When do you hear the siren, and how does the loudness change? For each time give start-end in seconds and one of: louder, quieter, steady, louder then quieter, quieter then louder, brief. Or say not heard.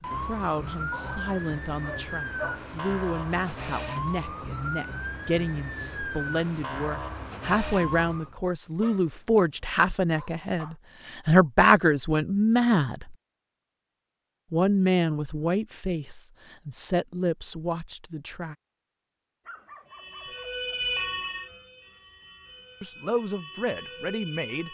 0.0-8.3 steady
19.9-24.6 quieter then louder.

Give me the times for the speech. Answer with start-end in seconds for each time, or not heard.
0.0-13.2, 14.5-18.6, 22.8-24.6.